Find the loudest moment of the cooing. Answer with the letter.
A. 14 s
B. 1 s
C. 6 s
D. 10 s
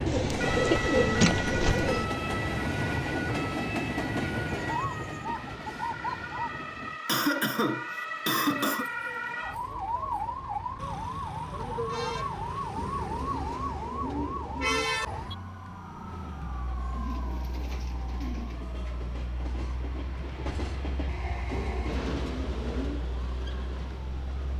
B.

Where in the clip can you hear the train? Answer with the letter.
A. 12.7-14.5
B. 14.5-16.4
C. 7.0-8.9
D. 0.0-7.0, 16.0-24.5
D.